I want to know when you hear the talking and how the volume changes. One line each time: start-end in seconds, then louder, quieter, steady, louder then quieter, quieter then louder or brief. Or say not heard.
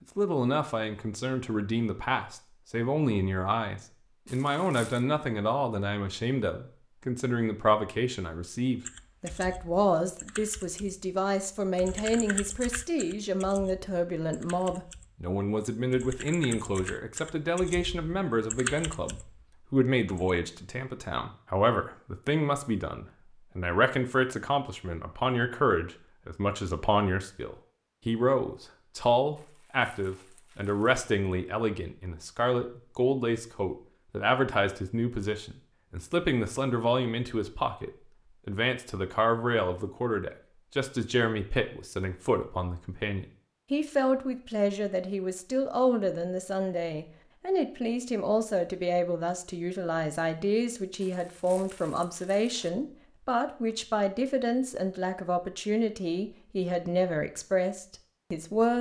0.1-58.7 steady.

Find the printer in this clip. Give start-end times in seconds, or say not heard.
not heard.